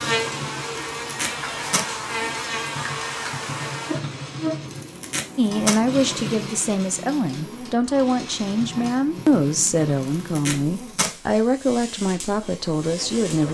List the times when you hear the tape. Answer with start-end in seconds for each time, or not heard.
1.0-1.9, 4.7-5.8, 10.0-11.2.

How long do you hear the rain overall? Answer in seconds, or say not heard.
not heard.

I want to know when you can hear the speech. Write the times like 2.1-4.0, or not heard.
5.3-13.5.